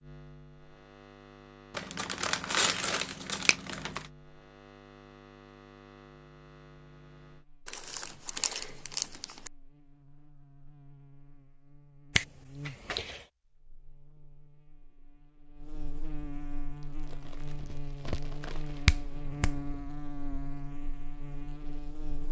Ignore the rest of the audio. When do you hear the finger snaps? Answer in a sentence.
You can hear the finger snaps from 12.2 to 13.2 s and from 18.9 to 19.6 s.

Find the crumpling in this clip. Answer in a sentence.
You can hear the crumpling from 1.7 to 4.1 s, from 7.7 to 9.5 s and from 16.8 to 18.9 s.